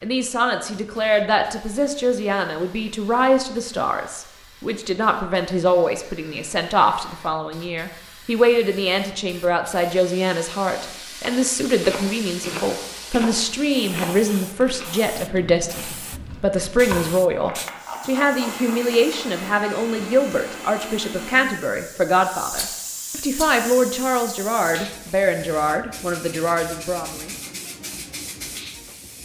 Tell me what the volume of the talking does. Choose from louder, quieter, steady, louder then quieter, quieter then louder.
steady.